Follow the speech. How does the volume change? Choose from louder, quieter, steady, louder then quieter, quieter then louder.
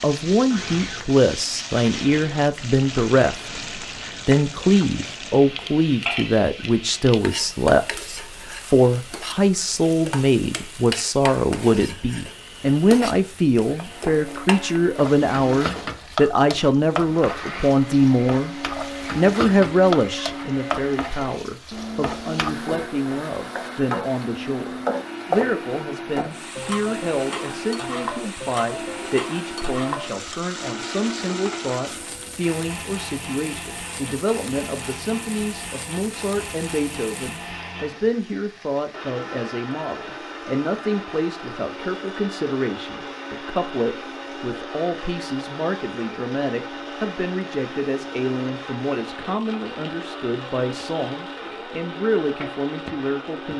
quieter.